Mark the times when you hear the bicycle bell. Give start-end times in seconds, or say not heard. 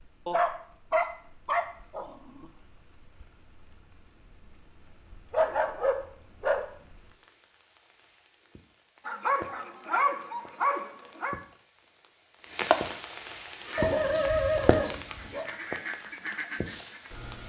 not heard.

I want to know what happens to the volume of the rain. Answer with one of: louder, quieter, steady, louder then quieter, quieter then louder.
louder.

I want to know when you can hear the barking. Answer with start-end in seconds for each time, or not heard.
0.2-2.5, 5.1-6.7, 9.1-11.3, 13.8-15.4.